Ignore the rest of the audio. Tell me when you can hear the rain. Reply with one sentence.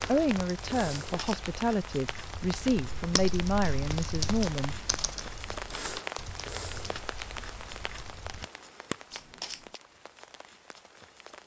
The rain can be heard from 0.0 to 11.4 s.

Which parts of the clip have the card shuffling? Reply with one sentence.
You can hear the card shuffling from 1.0 to 1.4 s and from 9.1 to 9.8 s.